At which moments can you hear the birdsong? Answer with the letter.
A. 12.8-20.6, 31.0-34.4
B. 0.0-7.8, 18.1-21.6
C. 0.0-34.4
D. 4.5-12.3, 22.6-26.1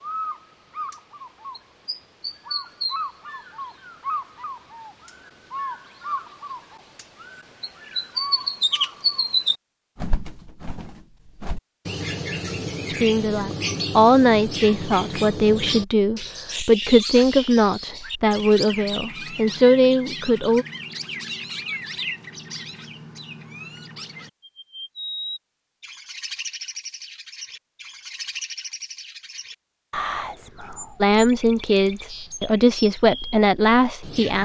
C.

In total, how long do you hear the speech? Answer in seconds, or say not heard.
11 s.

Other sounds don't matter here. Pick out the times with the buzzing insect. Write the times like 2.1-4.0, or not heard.
not heard.